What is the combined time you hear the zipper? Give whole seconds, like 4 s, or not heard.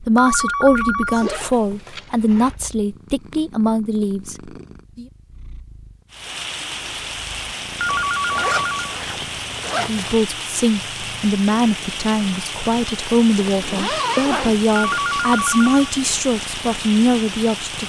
6 s.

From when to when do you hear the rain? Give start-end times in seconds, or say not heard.
6.1-17.8.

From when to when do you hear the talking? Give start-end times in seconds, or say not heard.
0.1-5.0, 9.7-17.8.